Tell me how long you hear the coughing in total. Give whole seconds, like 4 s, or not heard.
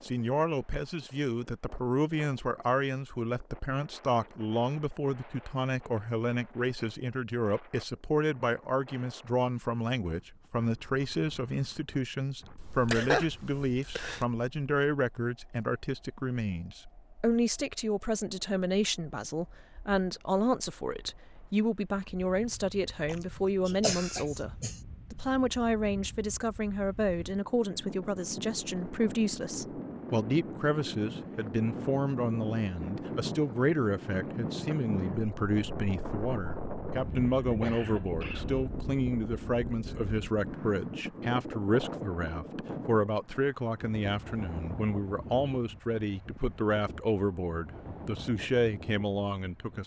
5 s.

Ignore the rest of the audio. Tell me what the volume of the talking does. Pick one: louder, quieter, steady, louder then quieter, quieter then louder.
steady.